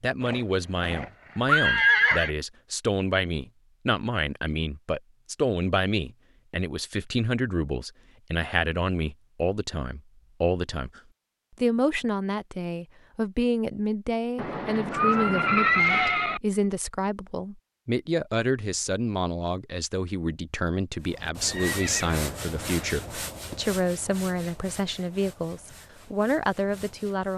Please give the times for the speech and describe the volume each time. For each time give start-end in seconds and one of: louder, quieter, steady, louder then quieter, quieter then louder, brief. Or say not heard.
0.0-11.0 steady
11.6-27.3 steady.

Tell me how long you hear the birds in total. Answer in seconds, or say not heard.
not heard.